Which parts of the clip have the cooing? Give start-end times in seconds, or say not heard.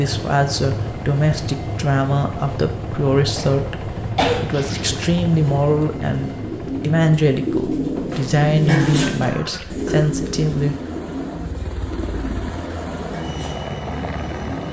4.5-14.6.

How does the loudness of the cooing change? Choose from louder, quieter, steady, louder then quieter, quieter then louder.
louder then quieter.